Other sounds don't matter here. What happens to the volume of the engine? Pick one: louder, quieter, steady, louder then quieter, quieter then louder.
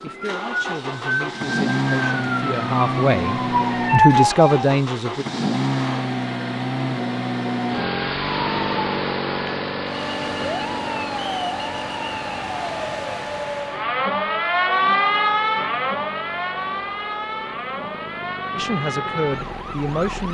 quieter.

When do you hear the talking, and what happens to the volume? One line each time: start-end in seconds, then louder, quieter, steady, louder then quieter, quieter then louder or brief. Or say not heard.
0.0-5.2 louder
18.6-20.3 brief.